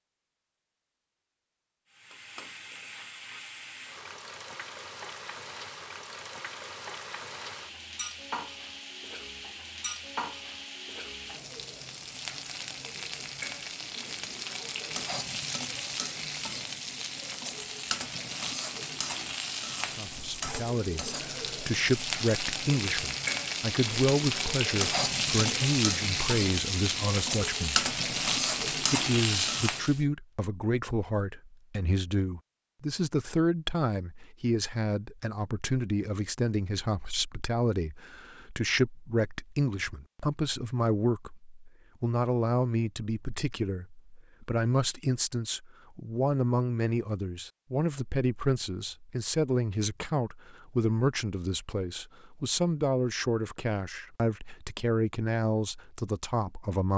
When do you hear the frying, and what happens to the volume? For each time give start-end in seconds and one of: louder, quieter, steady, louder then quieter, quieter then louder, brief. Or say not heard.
1.9-30.0 louder.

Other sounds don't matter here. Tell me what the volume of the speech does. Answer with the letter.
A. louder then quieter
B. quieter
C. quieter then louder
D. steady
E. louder
D.